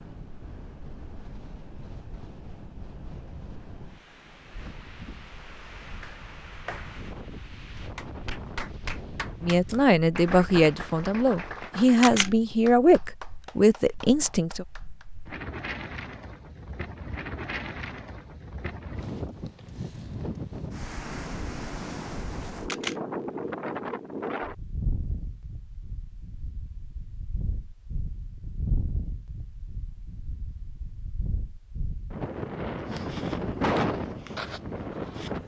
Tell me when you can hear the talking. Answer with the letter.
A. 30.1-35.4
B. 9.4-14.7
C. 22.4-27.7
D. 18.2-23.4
B.